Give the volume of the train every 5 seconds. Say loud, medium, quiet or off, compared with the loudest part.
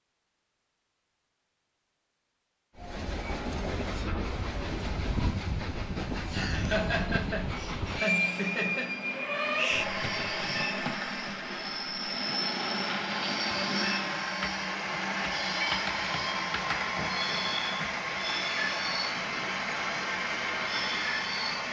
medium, loud, loud, loud, loud.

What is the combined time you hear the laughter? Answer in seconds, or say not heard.
3 s.